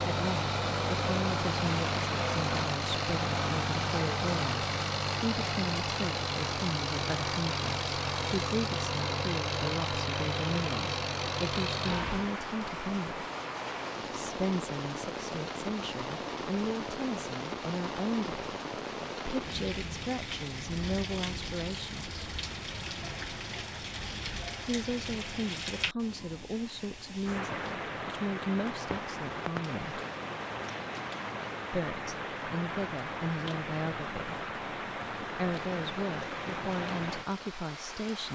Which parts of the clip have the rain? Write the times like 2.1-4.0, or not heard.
0.0-38.3.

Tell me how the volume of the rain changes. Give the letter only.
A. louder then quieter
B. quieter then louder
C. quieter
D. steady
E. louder
D.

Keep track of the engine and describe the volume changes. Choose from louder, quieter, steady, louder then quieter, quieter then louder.
steady.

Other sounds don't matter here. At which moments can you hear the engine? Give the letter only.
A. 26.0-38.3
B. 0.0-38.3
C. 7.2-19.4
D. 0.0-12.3
D.